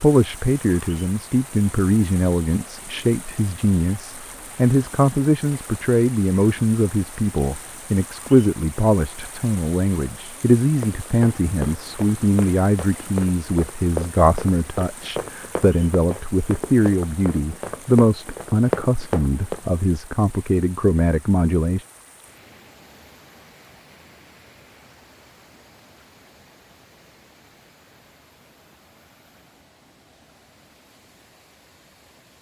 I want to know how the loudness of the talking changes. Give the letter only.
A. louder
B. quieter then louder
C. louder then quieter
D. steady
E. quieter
D.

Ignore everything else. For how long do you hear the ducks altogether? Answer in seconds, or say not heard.
not heard.